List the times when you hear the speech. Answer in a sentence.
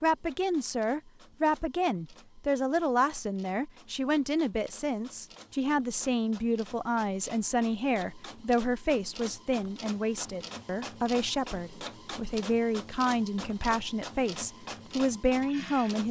The speech can be heard from 0.0 to 16.0 s.